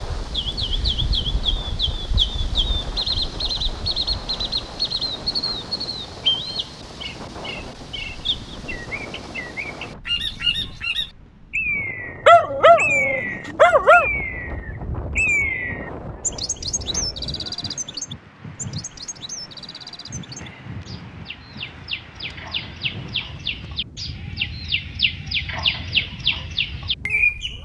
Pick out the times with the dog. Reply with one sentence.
The dog can be heard from 12.2 to 14.1 s.